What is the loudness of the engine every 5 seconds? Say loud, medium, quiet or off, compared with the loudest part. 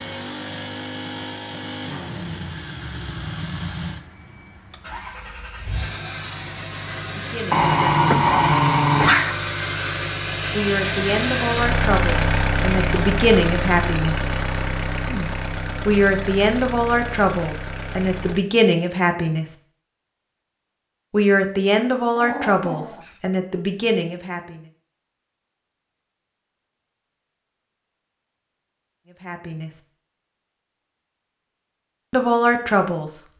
medium, medium, loud, medium, off, off, off.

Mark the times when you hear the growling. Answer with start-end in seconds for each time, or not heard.
7.5-9.3, 22.1-23.1.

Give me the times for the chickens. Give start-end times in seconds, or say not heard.
not heard.